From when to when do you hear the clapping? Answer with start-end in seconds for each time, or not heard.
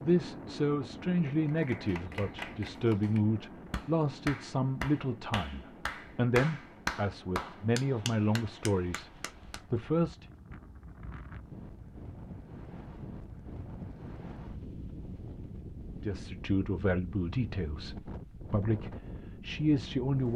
1.4-9.6.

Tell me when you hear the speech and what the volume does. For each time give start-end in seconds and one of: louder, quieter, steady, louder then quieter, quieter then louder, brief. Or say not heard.
0.0-10.2 steady
16.0-20.3 quieter then louder.